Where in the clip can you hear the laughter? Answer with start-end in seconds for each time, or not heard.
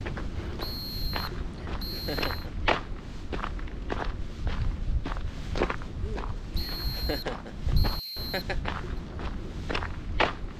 1.5-2.5, 6.8-8.7.